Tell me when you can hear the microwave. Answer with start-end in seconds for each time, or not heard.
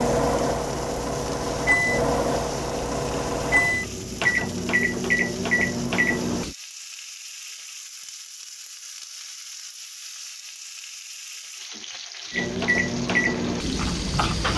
0.0-6.5, 12.3-14.5.